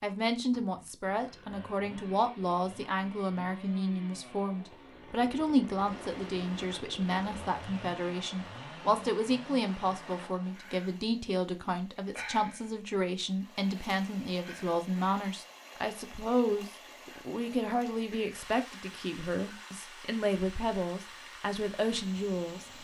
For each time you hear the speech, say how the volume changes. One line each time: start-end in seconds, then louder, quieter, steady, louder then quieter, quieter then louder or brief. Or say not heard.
0.0-22.7 steady.